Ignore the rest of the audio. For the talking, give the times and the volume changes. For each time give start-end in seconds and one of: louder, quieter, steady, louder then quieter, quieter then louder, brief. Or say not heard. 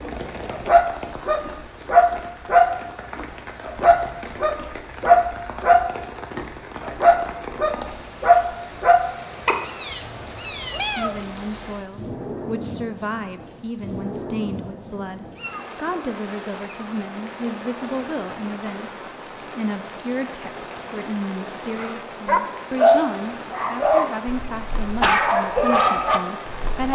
10.8-26.8 steady.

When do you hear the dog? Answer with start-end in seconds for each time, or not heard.
0.1-9.6, 21.8-26.8.